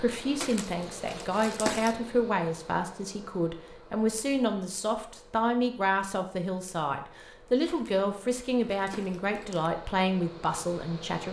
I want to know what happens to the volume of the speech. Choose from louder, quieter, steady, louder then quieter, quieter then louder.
steady.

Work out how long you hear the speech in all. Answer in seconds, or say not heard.
11 s.